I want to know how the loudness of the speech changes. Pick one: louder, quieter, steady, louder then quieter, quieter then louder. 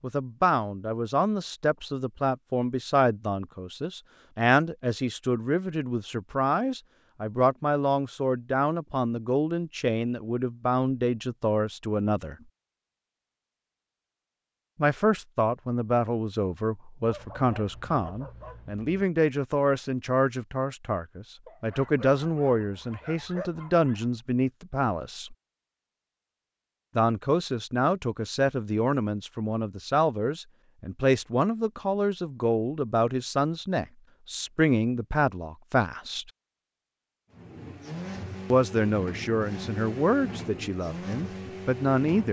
steady.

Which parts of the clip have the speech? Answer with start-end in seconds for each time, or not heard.
0.0-12.3, 14.8-25.4, 26.9-36.2, 38.5-42.2.